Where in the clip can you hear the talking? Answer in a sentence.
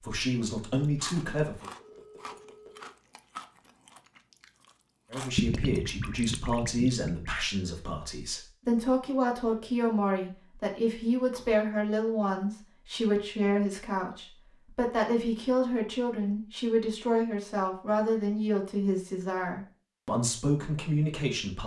You can hear the talking from 0.0 to 1.7 s and from 5.1 to 21.6 s.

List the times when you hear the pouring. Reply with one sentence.
You can hear the pouring from 5.3 to 7.3 s.